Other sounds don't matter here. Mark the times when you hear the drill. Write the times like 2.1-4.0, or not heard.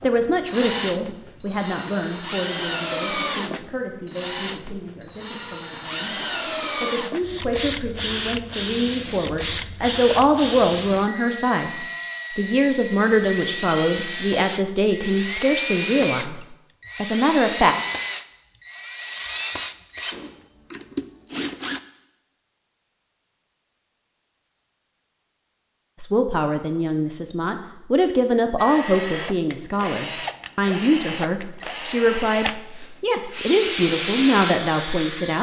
0.0-21.8, 28.6-35.3.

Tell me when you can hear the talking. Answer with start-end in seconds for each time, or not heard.
0.0-6.2, 6.8-17.8, 25.9-35.3.